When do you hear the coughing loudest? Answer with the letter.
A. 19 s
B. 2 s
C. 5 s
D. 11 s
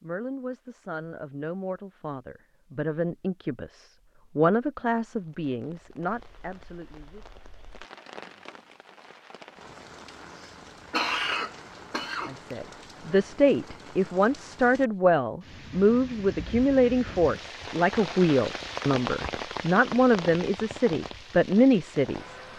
D.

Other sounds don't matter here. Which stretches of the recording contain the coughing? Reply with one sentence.
The coughing can be heard from 10.3 to 12.3 s.